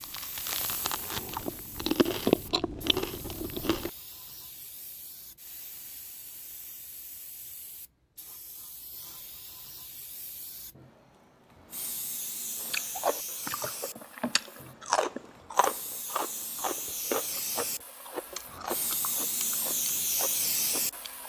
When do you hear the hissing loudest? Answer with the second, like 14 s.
20 s.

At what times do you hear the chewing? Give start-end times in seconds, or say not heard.
0.0-3.9, 12.6-21.2.